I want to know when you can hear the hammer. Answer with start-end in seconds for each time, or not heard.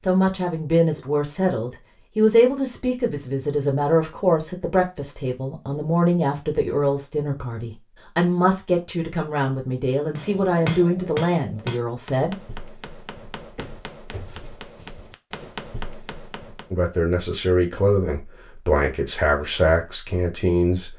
10.2-16.7.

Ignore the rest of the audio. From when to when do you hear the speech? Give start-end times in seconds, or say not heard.
0.1-12.3, 16.7-20.9.